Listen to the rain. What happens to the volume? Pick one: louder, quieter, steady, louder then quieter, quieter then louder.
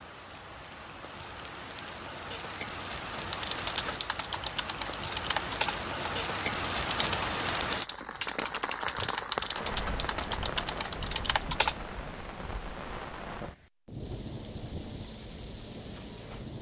louder then quieter.